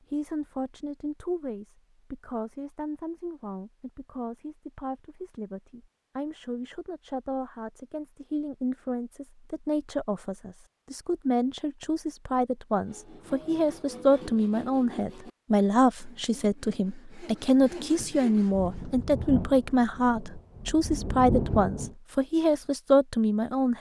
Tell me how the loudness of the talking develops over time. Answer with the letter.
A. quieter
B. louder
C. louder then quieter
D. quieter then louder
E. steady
B.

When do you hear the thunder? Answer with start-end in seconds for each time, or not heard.
18.5-21.9.